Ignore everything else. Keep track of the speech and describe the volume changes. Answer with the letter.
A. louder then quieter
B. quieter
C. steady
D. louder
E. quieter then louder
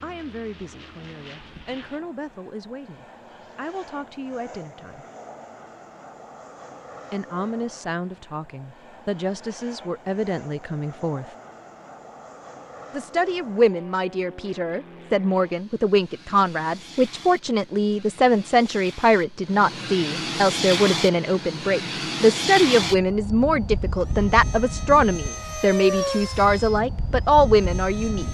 D.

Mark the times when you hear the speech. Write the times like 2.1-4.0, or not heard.
0.0-5.0, 7.1-11.3, 12.9-28.2.